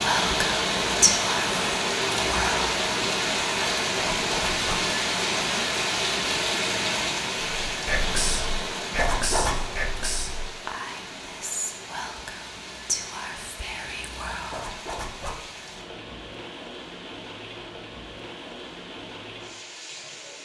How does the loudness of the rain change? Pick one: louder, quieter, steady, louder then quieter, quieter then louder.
quieter.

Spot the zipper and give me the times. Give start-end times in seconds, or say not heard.
4.0-4.8, 8.9-9.8, 14.5-15.4.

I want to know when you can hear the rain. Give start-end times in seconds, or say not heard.
0.0-20.3.